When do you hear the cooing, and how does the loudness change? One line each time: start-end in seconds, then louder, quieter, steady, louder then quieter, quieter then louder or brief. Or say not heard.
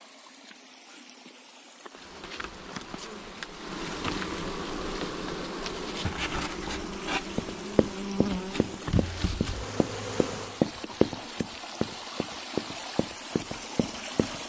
not heard.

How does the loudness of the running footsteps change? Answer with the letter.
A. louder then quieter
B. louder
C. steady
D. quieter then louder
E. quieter
A.